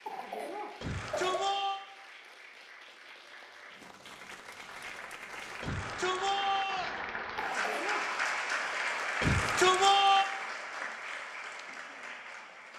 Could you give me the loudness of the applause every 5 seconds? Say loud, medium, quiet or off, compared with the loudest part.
quiet, loud, medium.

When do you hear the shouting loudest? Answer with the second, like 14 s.
10 s.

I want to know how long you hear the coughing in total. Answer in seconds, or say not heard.
2 s.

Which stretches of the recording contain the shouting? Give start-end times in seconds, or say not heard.
0.8-1.8, 5.6-7.0, 9.2-10.2.